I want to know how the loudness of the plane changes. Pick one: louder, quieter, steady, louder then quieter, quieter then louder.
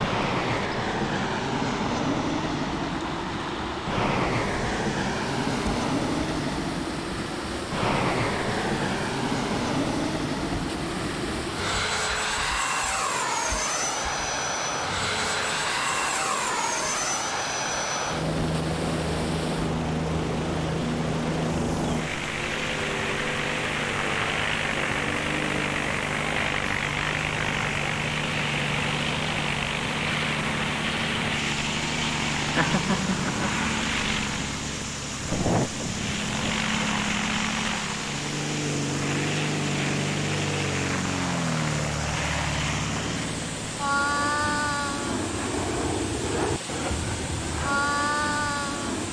steady.